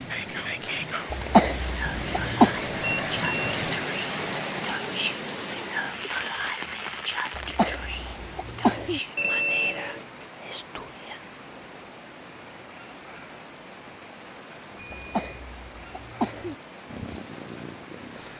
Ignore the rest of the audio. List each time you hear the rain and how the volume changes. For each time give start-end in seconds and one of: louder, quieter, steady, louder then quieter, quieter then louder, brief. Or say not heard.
0.0-18.3 quieter.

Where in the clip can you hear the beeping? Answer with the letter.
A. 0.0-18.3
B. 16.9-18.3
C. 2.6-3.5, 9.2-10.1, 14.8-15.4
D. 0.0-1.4
C.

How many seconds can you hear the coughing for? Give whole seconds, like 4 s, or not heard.
5 s.